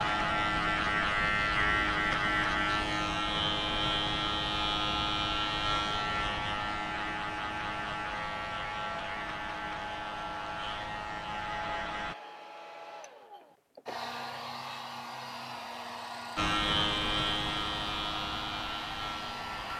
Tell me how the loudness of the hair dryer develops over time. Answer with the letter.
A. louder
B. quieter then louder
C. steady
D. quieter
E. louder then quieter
C.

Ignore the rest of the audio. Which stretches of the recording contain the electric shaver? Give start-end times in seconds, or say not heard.
0.0-12.2, 16.4-19.7.